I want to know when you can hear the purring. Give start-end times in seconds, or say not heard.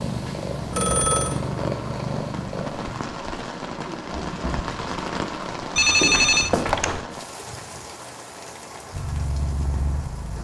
0.0-3.0, 8.9-10.3.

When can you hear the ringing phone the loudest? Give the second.
6 s.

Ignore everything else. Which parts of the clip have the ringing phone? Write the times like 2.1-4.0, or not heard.
0.7-1.4, 5.8-7.0.